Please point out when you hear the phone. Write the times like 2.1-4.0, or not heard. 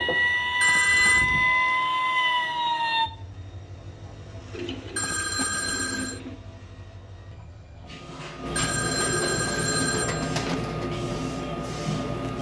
0.6-1.2, 5.0-6.2, 8.6-10.6.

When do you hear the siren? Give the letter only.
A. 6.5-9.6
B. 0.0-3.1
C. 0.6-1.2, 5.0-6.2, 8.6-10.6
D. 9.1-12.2
B.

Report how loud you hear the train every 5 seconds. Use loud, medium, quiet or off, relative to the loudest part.
quiet, medium, loud.